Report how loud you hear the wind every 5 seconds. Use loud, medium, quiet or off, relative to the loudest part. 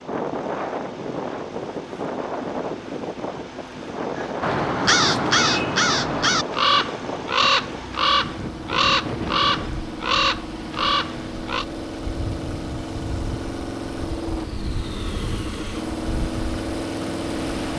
loud, loud, medium, medium.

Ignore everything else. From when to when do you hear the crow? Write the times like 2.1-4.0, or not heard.
4.2-11.7.